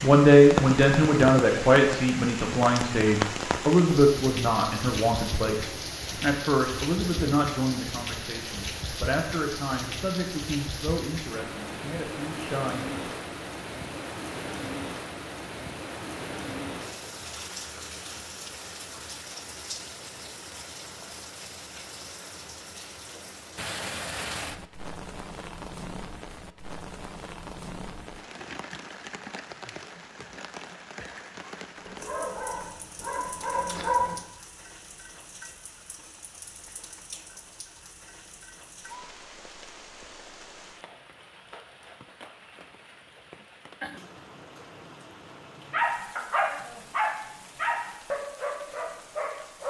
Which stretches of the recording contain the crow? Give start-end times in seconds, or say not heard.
not heard.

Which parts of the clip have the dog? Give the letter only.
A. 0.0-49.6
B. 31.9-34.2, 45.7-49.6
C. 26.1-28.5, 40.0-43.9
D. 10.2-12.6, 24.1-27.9
B.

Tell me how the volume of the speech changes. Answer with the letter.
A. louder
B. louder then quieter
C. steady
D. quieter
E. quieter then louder
D.